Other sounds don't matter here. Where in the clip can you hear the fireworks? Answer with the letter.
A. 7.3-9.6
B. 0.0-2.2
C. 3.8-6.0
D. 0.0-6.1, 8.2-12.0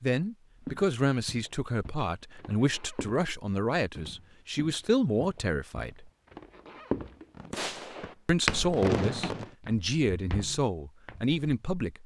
A.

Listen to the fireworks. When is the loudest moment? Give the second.
9 s.